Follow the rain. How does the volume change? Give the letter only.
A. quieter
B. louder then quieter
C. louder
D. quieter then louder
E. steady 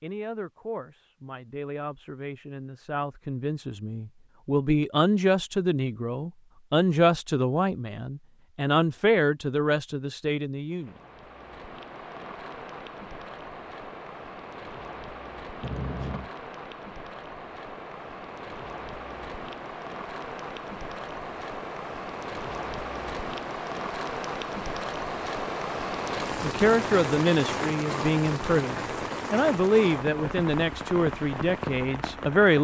C.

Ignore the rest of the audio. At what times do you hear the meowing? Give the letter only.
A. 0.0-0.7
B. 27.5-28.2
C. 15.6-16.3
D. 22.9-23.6
C.